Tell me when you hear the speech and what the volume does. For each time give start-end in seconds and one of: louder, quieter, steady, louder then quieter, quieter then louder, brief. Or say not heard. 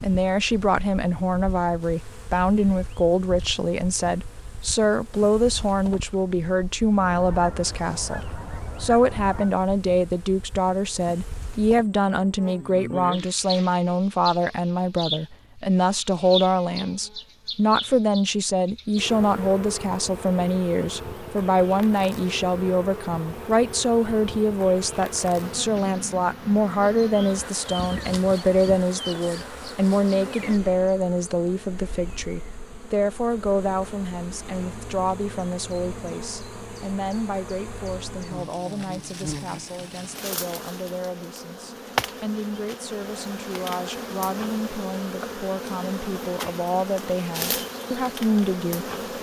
0.0-48.9 quieter.